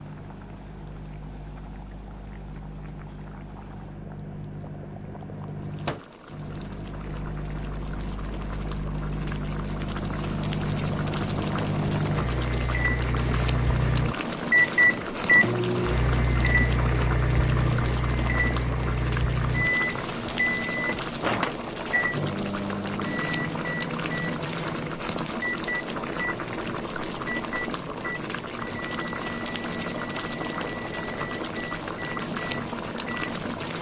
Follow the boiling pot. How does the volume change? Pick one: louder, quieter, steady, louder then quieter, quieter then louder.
louder.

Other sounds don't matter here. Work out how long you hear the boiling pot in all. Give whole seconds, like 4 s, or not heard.
34 s.